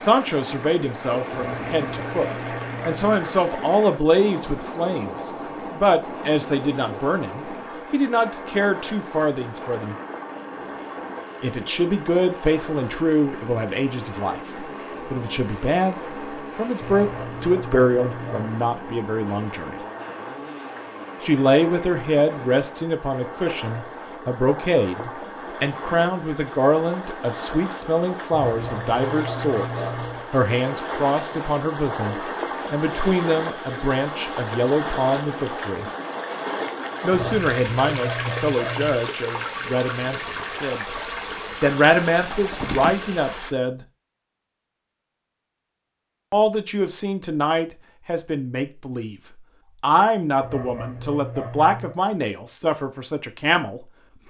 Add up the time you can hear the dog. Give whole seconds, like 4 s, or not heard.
9 s.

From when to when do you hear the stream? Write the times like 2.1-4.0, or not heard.
0.0-43.5.